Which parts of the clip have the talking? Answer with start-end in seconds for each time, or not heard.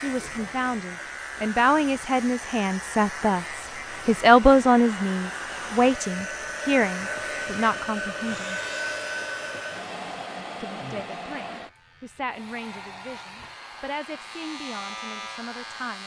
0.0-8.6, 10.6-16.0.